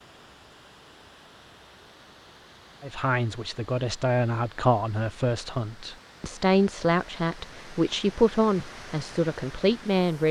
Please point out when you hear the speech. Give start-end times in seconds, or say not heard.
2.8-10.2.